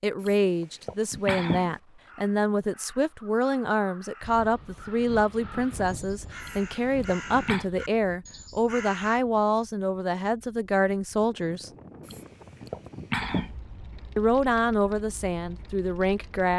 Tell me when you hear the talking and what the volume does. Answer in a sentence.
You can hear the talking from 0.0 to 11.7 s, at a steady volume; and briefly from 14.2 to 16.5 s.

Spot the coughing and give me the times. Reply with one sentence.
The coughing can be heard from 0.2 to 1.8 s, from 6.4 to 7.7 s and from 12.1 to 13.6 s.